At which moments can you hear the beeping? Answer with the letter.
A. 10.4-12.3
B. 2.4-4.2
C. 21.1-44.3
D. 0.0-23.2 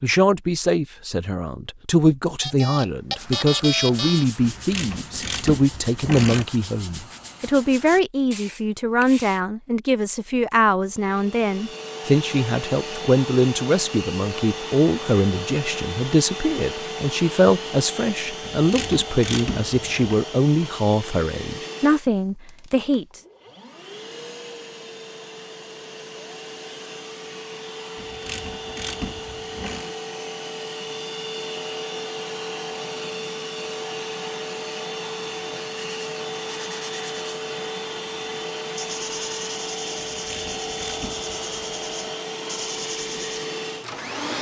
B.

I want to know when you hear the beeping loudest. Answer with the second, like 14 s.
4 s.